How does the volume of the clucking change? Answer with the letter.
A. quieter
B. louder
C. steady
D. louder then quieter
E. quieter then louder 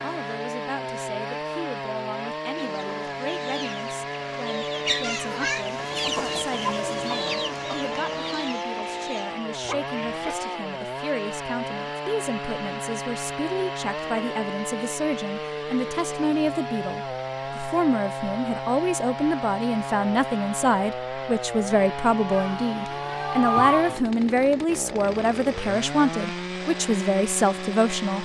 D.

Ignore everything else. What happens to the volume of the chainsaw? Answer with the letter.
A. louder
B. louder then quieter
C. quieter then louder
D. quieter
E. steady
E.